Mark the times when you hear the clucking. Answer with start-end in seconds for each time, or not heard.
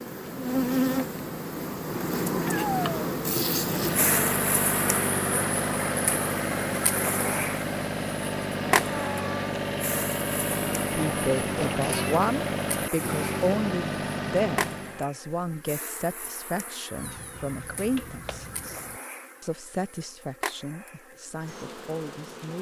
not heard.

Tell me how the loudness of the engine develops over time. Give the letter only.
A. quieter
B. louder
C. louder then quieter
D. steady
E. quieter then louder
D.